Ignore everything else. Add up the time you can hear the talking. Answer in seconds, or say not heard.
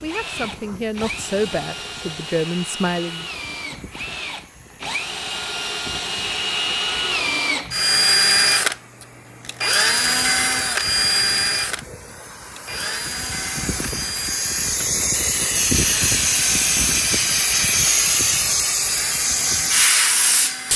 3 s.